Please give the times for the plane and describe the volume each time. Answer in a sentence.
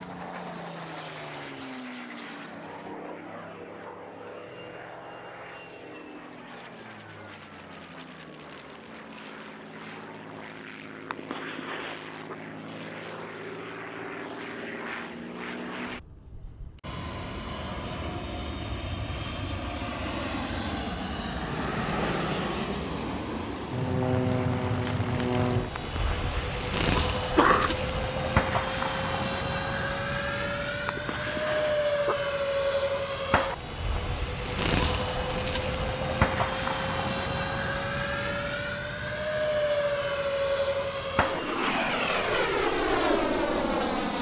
The plane can be heard from 0.0 to 44.1 s, getting louder.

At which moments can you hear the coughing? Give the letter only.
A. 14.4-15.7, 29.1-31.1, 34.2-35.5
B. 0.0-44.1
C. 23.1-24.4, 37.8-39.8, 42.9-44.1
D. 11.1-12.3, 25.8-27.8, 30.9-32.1
D.